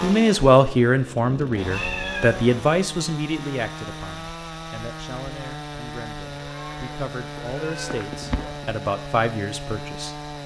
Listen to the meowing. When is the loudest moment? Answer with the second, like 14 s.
2 s.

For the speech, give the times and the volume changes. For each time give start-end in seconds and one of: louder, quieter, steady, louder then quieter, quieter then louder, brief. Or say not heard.
0.0-10.1 quieter then louder.